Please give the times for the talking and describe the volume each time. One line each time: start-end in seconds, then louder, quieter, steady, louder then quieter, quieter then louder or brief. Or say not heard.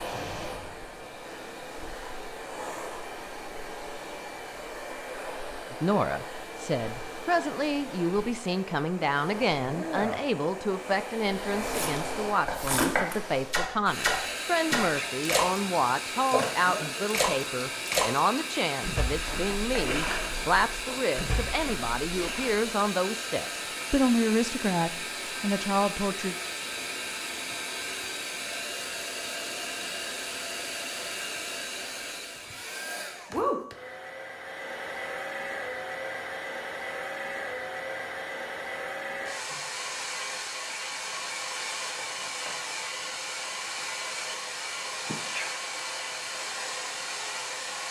5.7-26.4 steady.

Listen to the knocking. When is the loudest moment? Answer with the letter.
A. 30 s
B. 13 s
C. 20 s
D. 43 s
B.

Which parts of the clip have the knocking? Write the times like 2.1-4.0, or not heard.
12.4-13.1, 19.2-21.1, 42.0-43.2.